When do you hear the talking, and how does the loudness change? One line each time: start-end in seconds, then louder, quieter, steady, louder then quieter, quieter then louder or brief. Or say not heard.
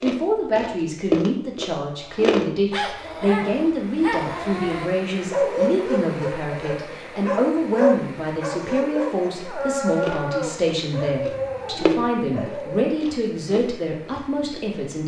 0.0-15.0 steady.